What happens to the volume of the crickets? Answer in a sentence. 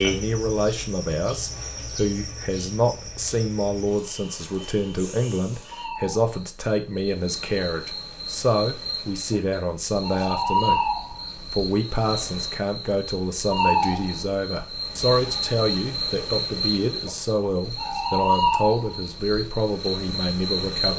The volume of the crickets goes up.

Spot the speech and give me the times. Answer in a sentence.
The speech can be heard from 0.0 to 10.8 s and from 11.5 to 20.9 s.